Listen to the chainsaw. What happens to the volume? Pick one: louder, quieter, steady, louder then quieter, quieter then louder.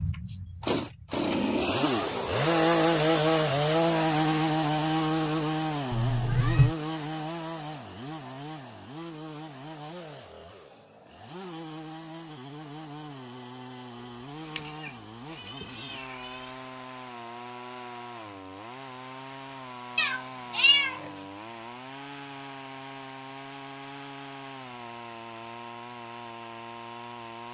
quieter.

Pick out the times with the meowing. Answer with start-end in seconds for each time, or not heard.
5.9-6.8, 14.1-16.4, 19.9-21.1.